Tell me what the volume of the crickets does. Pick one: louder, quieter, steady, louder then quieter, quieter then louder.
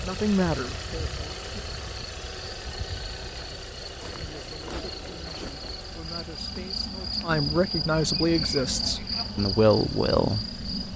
louder.